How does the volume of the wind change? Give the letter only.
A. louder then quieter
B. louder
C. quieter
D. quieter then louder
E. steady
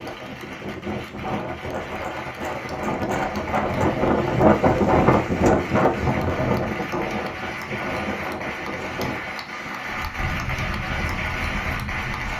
A.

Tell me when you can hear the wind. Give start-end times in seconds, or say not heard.
0.0-12.3.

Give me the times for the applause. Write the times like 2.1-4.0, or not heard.
0.0-12.3.